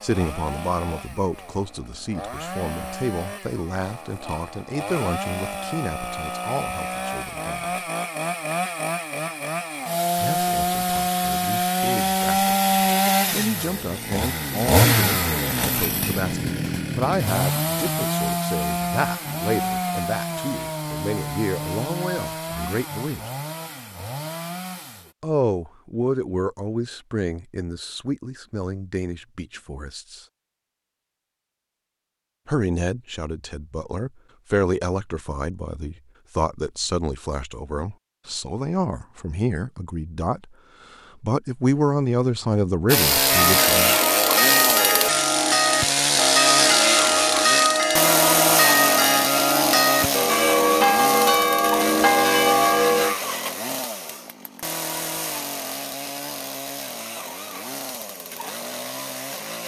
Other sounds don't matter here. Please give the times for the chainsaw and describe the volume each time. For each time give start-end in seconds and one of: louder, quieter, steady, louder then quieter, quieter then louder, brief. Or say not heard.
0.0-25.1 louder then quieter
42.9-59.6 quieter.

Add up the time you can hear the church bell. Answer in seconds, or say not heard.
10 s.